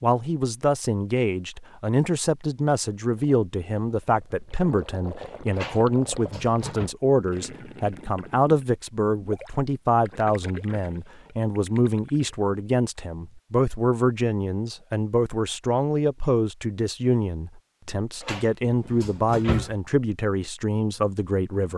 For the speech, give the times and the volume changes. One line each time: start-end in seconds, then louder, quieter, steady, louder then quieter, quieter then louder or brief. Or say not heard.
0.0-21.7 steady.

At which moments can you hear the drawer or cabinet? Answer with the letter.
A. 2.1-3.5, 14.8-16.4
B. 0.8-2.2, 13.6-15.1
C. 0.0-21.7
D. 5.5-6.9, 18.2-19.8
D.